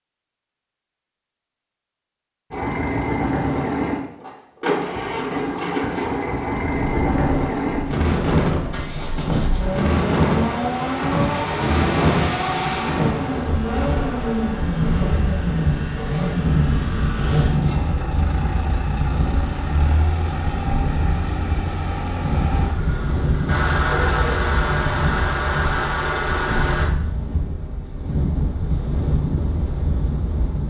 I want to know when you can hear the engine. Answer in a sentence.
The engine can be heard from 2.5 to 26.9 s.